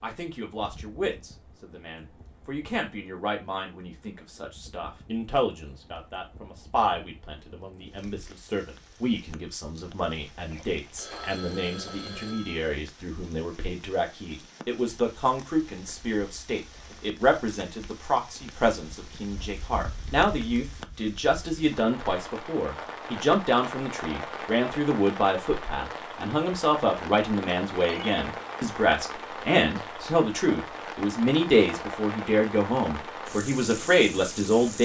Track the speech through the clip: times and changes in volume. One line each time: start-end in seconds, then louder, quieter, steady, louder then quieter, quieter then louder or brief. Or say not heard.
0.0-34.7 louder.